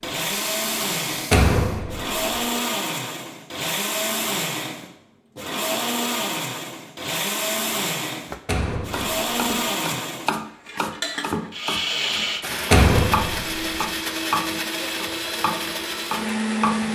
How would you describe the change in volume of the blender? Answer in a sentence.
The volume of the blender stays about the same.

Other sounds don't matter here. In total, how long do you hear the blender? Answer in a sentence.
You can hear the blender for 17 seconds altogether.